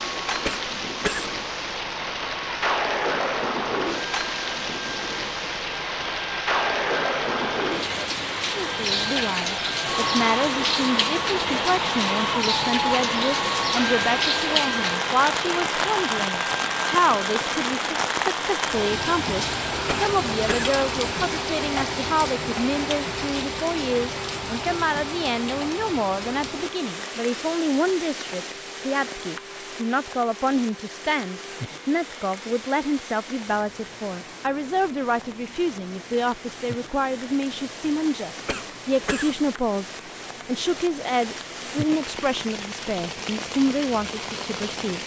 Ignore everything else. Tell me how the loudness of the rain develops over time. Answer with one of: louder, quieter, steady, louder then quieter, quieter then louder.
quieter.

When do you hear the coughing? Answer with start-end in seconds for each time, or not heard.
0.5-1.3, 19.9-20.8, 38.5-39.4.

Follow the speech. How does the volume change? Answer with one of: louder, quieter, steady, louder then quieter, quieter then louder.
steady.